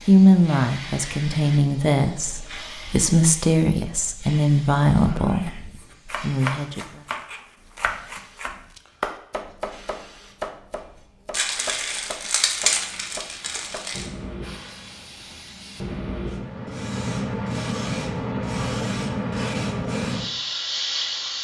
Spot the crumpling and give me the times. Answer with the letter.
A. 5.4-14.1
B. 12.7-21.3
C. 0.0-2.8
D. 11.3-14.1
D.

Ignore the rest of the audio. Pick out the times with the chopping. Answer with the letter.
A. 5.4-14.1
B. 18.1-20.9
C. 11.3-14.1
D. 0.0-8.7
A.